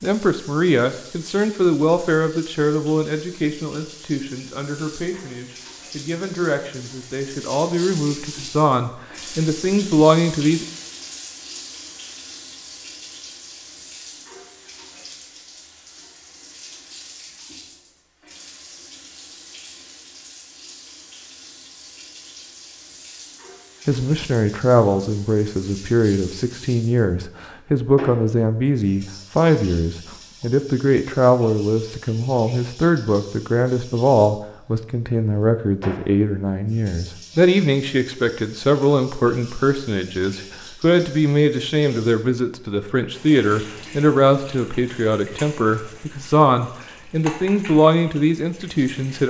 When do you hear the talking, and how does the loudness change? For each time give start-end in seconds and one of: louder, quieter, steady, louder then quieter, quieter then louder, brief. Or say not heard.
0.0-10.7 quieter then louder
23.9-49.2 steady.